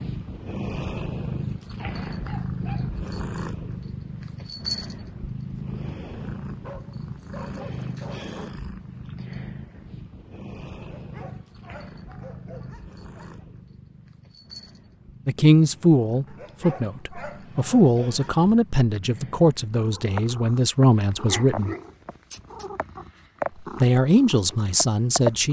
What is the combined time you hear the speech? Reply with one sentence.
You can hear the speech for 8 seconds altogether.